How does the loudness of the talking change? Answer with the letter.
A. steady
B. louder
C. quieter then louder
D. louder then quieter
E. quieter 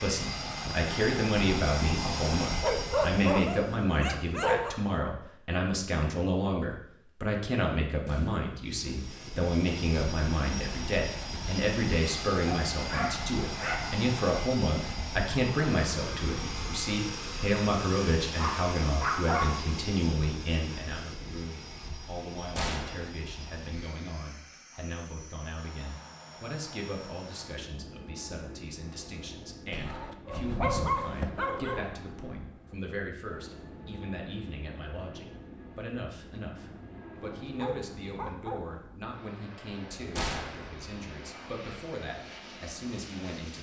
E.